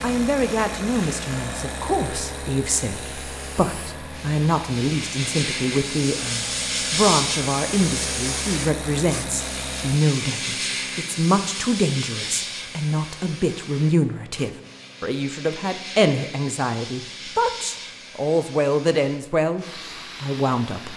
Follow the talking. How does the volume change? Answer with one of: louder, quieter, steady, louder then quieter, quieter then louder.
steady.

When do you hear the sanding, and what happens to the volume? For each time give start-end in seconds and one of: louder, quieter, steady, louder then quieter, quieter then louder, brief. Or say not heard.
not heard.